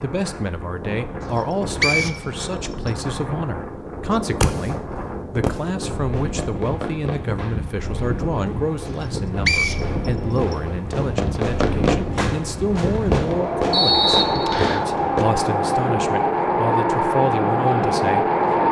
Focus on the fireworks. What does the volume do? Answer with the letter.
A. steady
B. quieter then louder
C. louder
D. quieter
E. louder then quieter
B.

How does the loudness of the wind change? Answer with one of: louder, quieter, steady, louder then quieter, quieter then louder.
louder.